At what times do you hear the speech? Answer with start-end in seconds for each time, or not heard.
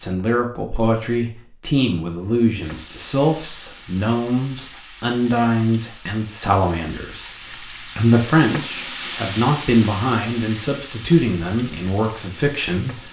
0.0-13.0.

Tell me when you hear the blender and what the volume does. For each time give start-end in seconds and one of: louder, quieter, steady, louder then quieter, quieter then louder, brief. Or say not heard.
not heard.